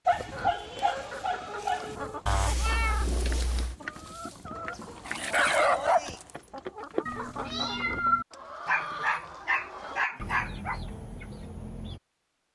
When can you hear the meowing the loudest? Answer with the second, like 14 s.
8 s.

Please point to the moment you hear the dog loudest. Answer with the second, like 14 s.
6 s.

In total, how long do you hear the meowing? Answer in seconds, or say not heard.
3 s.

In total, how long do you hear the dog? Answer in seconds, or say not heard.
5 s.